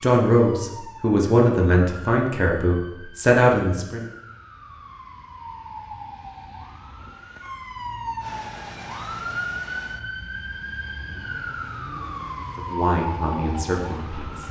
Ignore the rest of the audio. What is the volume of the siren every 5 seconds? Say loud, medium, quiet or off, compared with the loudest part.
medium, loud, loud.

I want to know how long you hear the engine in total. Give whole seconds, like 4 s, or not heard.
6 s.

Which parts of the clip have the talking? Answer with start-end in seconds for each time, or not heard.
0.0-4.0, 12.6-14.4.